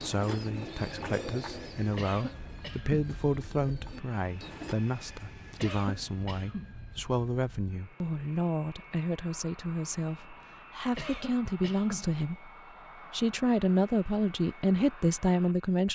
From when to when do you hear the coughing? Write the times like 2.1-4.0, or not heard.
1.9-3.0, 5.5-6.7, 10.9-12.1.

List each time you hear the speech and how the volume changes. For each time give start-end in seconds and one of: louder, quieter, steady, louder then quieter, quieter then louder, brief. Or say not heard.
0.0-12.5 steady
13.1-15.9 brief.